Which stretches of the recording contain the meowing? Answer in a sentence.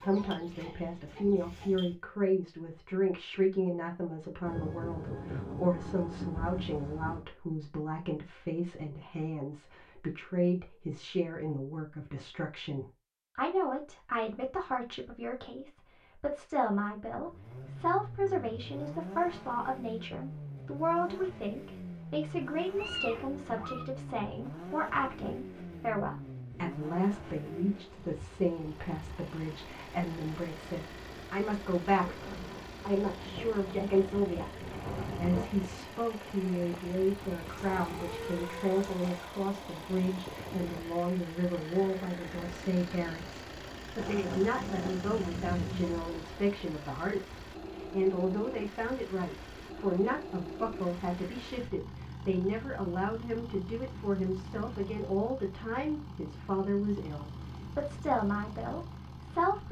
You can hear the meowing from 22.8 to 23.9 s and from 37.5 to 39.3 s.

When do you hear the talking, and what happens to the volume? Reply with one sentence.
The talking can be heard from 0.0 to 59.6 s, at a steady volume.